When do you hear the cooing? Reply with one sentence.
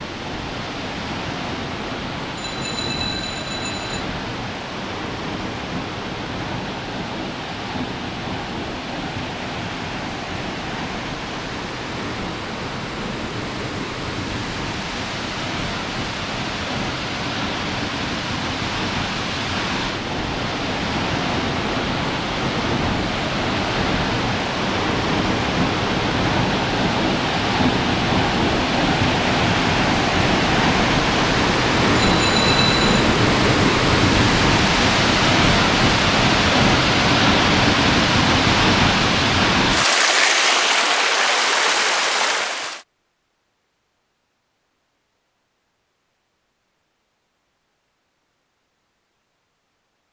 You can't hear the cooing here.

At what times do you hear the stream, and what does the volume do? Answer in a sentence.
The stream can be heard from 0.0 to 42.8 s, getting louder.